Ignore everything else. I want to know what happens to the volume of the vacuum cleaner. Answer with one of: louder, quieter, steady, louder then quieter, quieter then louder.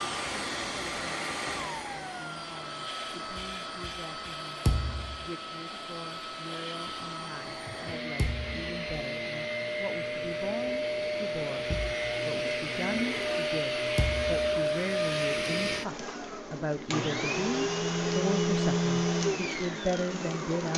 louder.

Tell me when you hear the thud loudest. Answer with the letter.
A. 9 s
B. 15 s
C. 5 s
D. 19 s
C.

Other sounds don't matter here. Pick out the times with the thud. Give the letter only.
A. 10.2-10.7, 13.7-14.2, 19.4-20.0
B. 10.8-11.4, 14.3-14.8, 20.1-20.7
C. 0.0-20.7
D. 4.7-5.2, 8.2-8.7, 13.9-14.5
D.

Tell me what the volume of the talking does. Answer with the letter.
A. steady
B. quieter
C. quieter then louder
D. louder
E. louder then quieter
D.